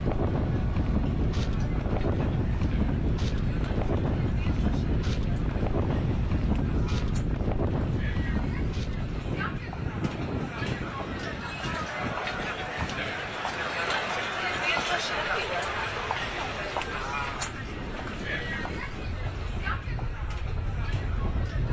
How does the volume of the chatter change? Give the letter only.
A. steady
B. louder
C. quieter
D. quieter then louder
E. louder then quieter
E.